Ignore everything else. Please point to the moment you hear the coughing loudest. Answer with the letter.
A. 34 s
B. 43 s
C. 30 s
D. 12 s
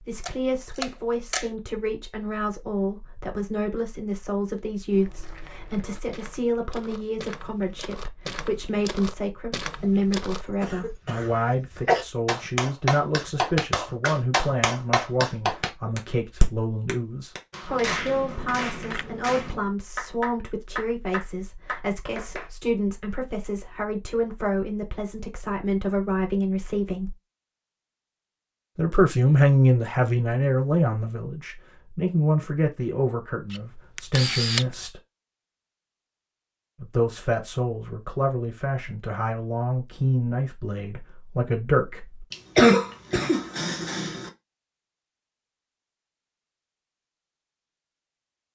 B.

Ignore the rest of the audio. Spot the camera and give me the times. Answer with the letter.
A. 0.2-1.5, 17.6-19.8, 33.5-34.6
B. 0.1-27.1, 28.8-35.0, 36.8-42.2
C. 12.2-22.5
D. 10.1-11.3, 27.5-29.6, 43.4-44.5
A.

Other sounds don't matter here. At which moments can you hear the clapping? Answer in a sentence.
The clapping can be heard from 12.2 to 22.5 s.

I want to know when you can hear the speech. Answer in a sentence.
You can hear the speech from 0.1 to 27.1 s, from 28.8 to 35.0 s and from 36.8 to 42.2 s.